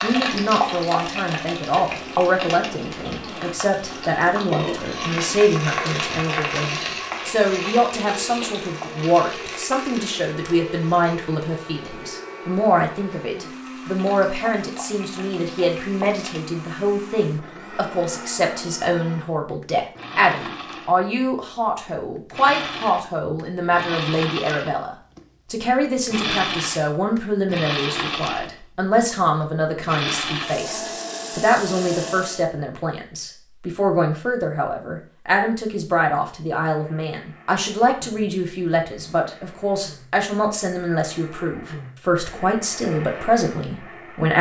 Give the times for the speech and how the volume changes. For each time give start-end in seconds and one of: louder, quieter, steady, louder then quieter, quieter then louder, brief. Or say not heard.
0.0-44.3 steady.